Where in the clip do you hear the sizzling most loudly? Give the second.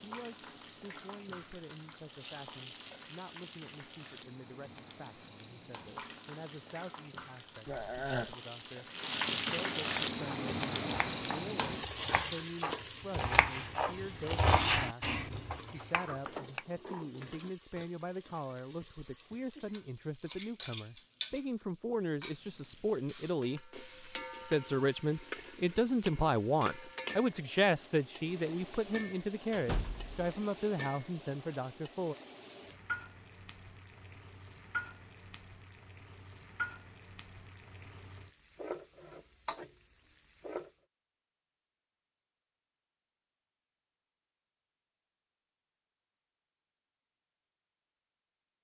10 s.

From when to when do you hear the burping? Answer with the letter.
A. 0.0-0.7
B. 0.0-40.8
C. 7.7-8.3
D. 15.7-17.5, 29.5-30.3
C.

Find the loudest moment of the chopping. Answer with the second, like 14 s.
15 s.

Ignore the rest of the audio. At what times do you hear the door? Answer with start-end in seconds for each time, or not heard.
15.7-17.5, 29.5-30.3.